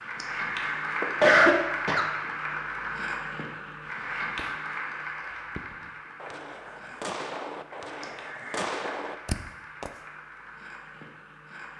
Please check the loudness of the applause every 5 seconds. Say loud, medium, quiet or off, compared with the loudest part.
loud, medium, quiet.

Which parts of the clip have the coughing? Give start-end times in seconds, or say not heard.
0.2-2.1, 8.0-9.1.